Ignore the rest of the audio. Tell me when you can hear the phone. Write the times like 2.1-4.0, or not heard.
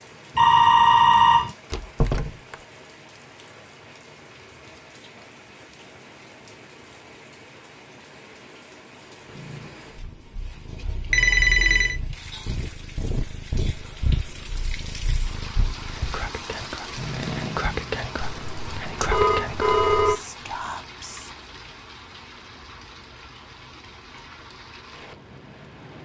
0.3-1.5, 11.1-11.9, 18.2-20.1.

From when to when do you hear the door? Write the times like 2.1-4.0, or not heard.
1.7-2.5.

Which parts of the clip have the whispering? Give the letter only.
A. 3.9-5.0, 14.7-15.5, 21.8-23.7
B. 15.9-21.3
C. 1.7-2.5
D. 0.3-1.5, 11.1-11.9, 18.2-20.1
B.